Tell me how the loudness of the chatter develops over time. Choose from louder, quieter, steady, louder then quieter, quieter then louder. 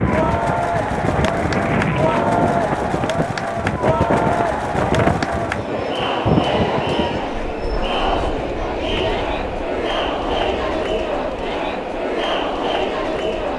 steady.